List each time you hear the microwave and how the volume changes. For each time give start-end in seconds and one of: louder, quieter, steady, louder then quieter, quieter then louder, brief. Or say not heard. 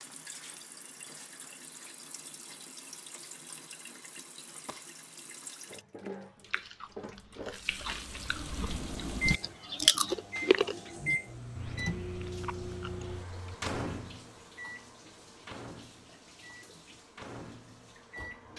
8.7-18.5 quieter.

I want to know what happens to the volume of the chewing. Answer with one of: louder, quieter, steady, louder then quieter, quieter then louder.
louder then quieter.